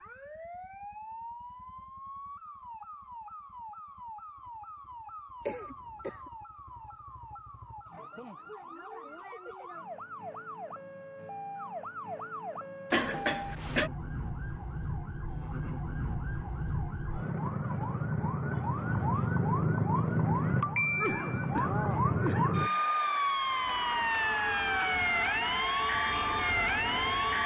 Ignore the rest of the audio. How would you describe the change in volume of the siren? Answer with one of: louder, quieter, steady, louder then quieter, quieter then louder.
louder.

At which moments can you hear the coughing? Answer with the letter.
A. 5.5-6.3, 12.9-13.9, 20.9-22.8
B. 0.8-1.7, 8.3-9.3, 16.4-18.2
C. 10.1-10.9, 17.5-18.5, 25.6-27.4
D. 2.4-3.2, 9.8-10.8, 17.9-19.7
A.